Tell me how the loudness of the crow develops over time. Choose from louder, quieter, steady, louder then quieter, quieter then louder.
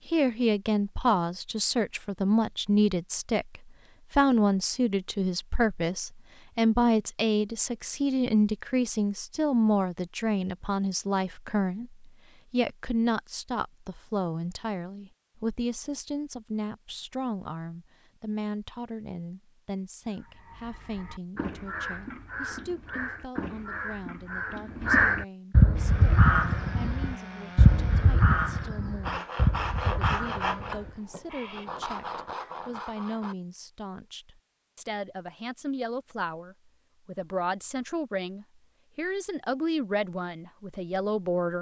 louder then quieter.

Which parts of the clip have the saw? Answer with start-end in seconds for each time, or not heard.
25.8-33.4.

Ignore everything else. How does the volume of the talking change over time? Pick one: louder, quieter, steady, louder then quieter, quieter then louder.
quieter then louder.